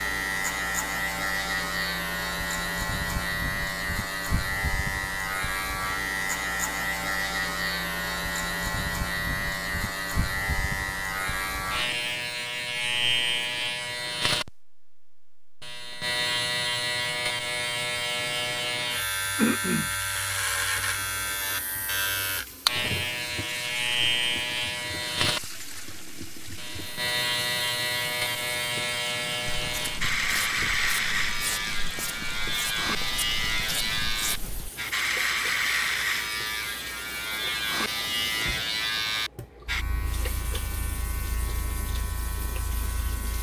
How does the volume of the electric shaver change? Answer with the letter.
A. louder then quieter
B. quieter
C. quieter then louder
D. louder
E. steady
E.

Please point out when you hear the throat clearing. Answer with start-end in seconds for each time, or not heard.
19.4-19.9.